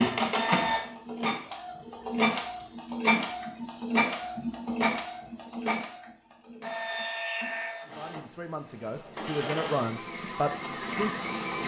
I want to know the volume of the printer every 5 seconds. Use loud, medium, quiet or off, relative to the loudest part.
loud, medium, medium.